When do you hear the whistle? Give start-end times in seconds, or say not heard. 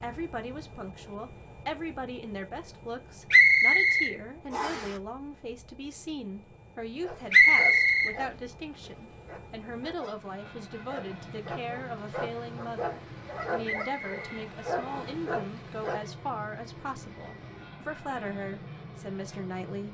3.3-4.9, 7.3-8.2, 13.6-15.2.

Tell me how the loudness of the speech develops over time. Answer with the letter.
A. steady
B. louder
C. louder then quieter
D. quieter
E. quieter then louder
A.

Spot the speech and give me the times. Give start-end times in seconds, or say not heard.
0.0-19.8.